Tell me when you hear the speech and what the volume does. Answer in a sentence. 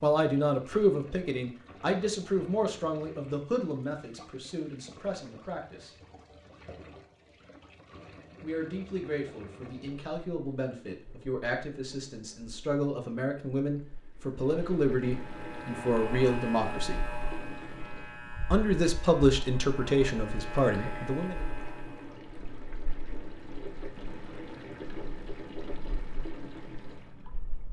You can hear the speech from 0.0 to 6.0 s, getting quieter; from 8.4 to 17.0 s, getting louder; and briefly from 18.5 to 21.4 s.